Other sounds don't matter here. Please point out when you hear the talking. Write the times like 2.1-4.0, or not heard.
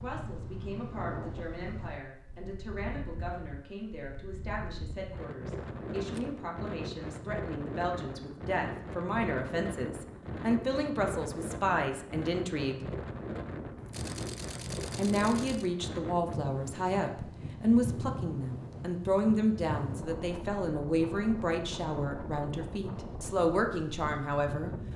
0.0-12.8, 14.9-24.7.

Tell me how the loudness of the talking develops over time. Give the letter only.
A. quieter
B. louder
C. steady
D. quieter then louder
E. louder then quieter
B.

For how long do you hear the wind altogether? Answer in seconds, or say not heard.
25 s.